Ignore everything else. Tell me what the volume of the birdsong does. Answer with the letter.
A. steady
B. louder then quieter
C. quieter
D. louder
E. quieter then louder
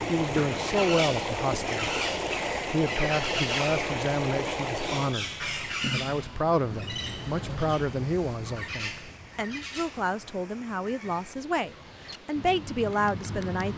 C.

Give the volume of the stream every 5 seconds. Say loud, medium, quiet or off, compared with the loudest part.
loud, quiet, quiet.